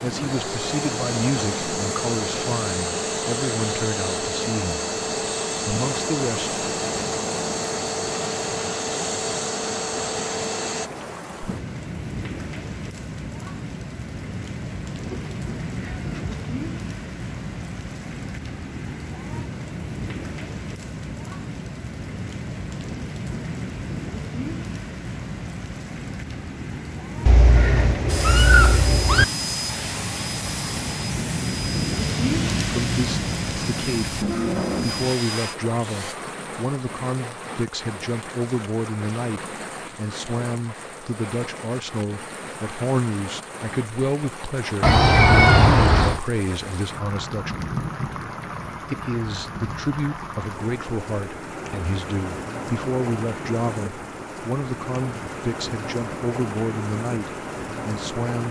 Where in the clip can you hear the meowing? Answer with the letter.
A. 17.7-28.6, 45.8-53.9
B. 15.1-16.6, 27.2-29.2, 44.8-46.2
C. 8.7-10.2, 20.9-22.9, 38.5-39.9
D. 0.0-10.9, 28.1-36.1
B.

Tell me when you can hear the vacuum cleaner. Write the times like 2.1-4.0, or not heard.
0.0-10.9, 28.1-36.1.